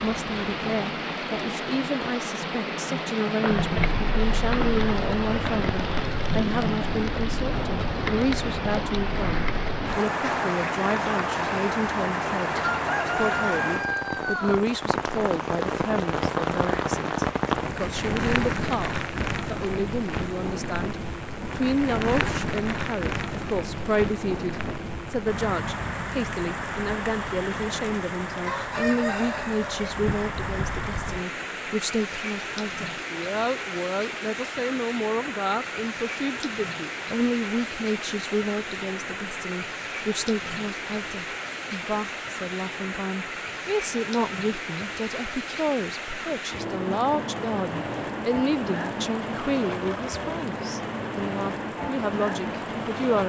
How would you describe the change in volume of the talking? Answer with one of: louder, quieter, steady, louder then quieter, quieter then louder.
steady.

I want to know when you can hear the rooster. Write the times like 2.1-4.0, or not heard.
12.7-14.7, 28.4-29.9.